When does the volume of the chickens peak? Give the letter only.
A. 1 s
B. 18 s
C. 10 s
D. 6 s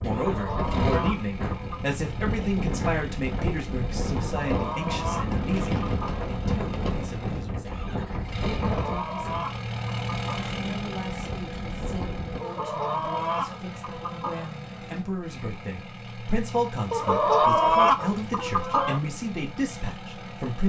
B.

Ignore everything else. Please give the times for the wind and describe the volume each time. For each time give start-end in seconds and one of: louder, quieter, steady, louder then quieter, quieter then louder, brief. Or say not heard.
0.0-12.4 quieter.